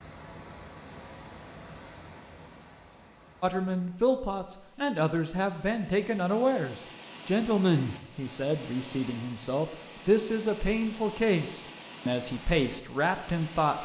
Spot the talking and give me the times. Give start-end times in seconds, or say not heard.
3.4-13.8.